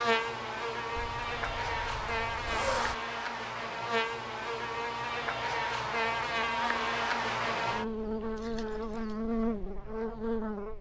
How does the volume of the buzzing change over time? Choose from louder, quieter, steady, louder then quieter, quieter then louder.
steady.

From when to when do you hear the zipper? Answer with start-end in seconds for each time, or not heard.
0.9-3.0, 8.3-9.2.